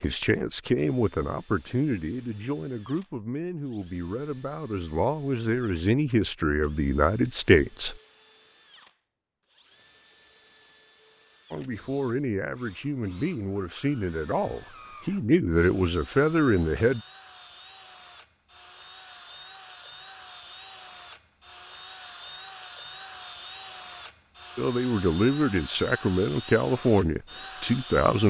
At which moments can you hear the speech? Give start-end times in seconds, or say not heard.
0.0-8.0, 11.5-17.0, 24.6-28.2.